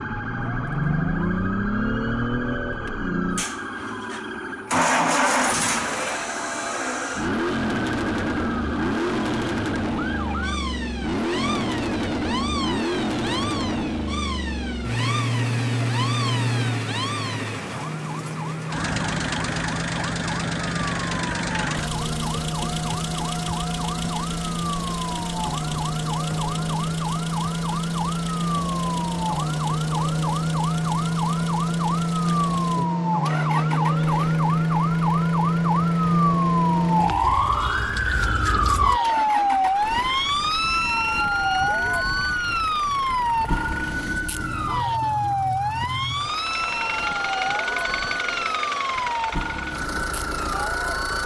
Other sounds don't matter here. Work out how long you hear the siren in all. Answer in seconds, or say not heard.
51 s.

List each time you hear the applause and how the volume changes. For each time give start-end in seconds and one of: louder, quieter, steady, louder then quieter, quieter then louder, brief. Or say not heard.
not heard.